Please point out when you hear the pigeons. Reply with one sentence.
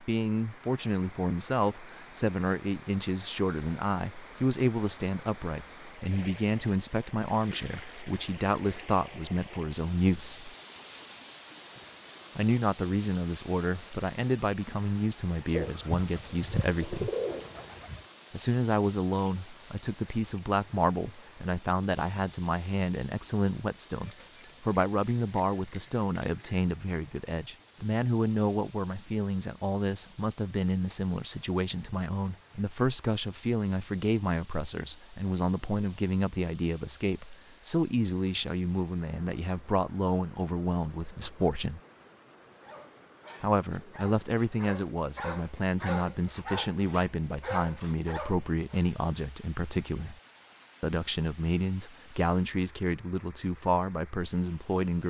The pigeons can be heard from 15.5 to 18.1 s.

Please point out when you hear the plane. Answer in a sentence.
The plane can't be heard in this clip.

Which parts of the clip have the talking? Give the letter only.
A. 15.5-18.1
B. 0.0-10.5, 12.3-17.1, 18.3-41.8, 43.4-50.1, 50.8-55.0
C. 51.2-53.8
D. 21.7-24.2
B.